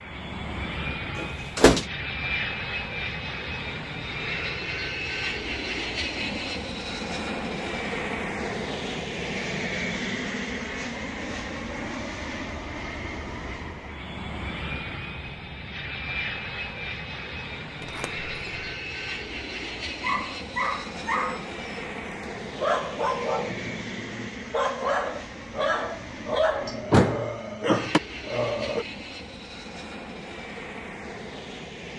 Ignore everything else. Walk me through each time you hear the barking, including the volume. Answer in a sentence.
The barking can be heard briefly from 20.0 to 21.6 s; and from 22.6 to 28.9 s, at a steady volume.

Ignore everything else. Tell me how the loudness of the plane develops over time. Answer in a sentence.
The volume of the plane goes down.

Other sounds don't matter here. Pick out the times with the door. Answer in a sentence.
The door can be heard from 1.1 to 1.9 s, from 17.8 to 18.7 s and from 26.9 to 28.0 s.